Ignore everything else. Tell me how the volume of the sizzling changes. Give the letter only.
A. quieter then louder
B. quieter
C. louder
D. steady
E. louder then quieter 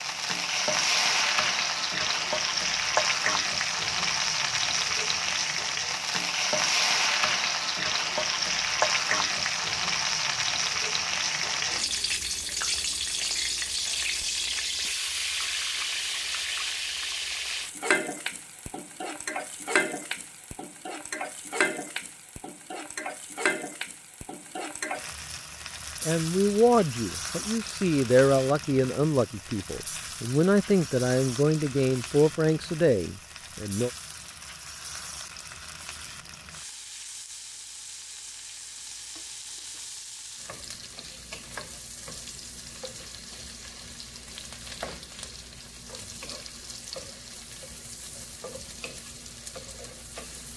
B.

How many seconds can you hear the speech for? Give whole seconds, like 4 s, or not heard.
8 s.